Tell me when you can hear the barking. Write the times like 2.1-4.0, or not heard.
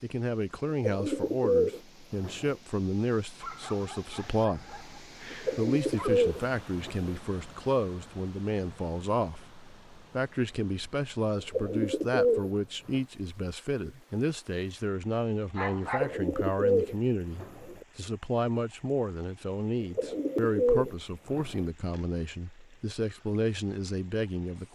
3.4-6.2, 15.6-16.1.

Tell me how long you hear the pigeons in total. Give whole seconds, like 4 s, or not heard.
9 s.